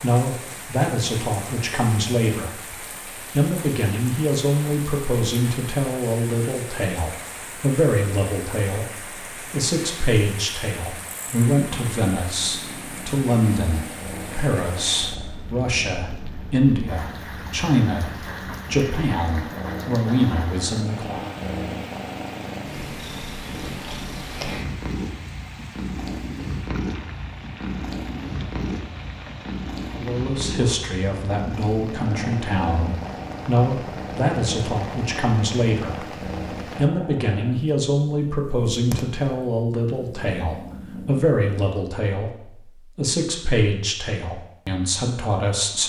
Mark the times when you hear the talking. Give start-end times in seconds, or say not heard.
0.0-2.6, 3.3-21.3, 29.9-36.0, 36.8-45.8.